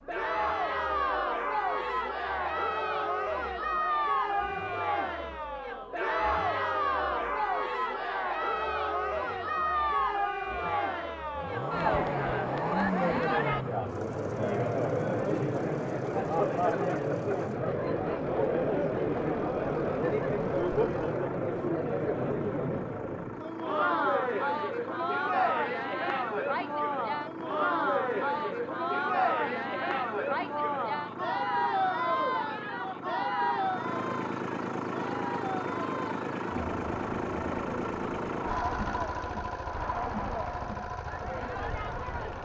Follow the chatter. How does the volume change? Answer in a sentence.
The volume of the chatter goes down.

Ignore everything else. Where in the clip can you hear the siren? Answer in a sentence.
You can't hear the siren here.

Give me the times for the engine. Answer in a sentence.
The engine can be heard from 0.0 to 42.3 s.